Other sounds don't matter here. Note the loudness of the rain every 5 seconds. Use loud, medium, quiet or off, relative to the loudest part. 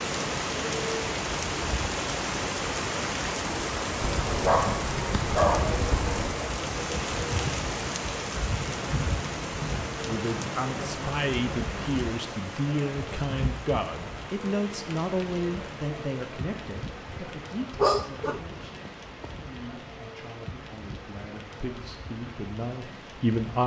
loud, loud, medium, medium, quiet.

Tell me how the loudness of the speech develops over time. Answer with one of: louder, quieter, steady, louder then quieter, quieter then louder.
quieter then louder.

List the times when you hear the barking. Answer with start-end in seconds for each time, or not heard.
4.0-6.5, 17.8-19.3.